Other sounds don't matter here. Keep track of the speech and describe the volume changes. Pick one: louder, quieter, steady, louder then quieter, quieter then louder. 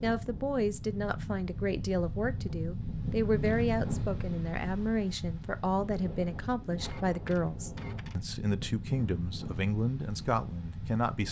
steady.